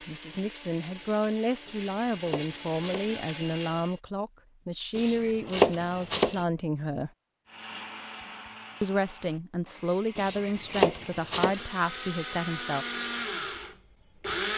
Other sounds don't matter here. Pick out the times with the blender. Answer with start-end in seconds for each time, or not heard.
0.0-4.0, 7.5-14.5.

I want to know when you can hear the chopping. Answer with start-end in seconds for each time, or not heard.
1.6-3.1, 5.0-6.5, 10.2-11.7.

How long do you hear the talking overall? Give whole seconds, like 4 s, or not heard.
11 s.